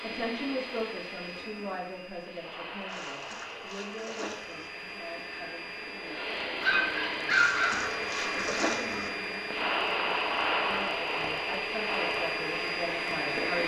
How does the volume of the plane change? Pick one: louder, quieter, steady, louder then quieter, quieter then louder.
louder.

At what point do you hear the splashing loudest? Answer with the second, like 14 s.
9 s.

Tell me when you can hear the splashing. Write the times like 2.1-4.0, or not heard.
2.9-4.7, 7.3-9.1.